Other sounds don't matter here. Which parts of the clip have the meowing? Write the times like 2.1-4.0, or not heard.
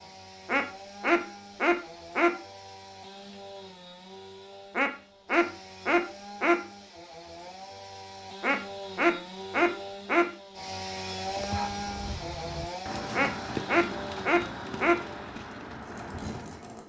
not heard.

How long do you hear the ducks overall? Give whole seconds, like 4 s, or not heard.
7 s.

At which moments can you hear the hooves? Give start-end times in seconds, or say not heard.
11.2-16.8.